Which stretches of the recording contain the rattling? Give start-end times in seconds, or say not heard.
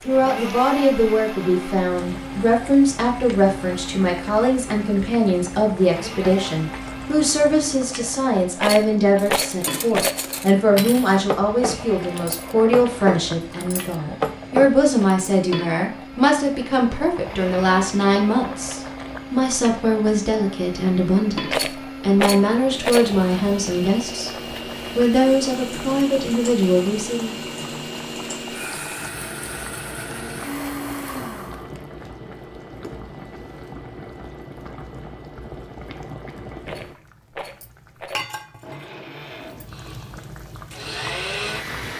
8.6-10.2, 21.4-23.1, 36.6-38.2.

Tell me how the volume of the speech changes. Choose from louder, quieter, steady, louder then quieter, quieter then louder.
steady.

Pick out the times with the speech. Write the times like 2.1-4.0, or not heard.
0.1-27.4.